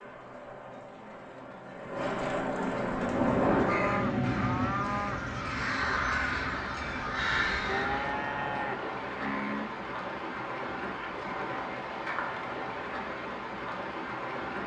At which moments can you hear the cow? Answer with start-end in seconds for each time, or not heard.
3.6-5.2, 7.7-9.8.